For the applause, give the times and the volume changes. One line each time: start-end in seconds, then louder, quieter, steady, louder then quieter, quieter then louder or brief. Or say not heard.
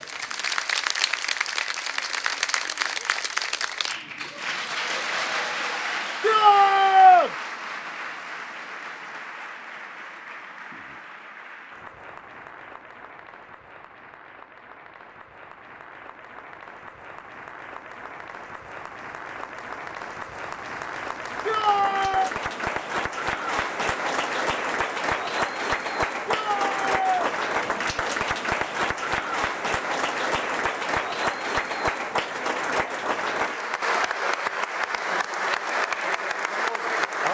0.0-37.2 quieter then louder.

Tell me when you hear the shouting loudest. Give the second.
7 s.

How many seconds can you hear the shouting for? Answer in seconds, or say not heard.
3 s.